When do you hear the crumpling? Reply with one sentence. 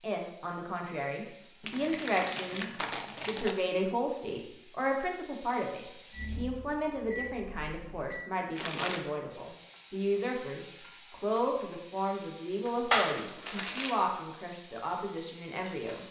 You can hear the crumpling from 1.6 to 3.5 s, from 8.6 to 9.1 s and from 12.9 to 14.0 s.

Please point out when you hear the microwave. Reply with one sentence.
You can hear the microwave from 6.1 to 8.3 s.